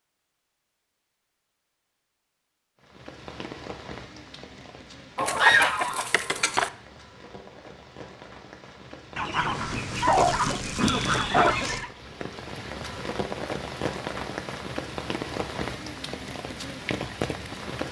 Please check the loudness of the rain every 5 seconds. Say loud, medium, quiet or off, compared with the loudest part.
medium, medium, loud, loud.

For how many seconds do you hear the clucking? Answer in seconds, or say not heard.
4 s.